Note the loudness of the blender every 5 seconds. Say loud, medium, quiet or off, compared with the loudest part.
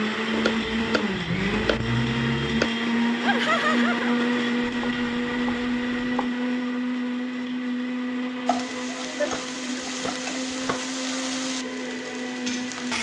loud, loud, medium.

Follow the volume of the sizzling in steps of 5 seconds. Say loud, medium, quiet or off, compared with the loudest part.
off, loud, loud.